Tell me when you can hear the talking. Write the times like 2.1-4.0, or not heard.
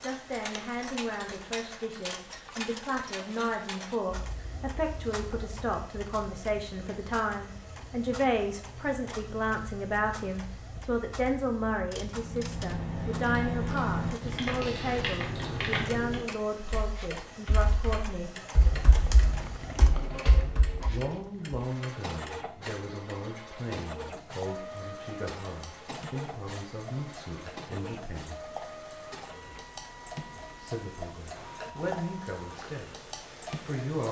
0.0-18.4, 20.9-28.4, 30.6-34.0.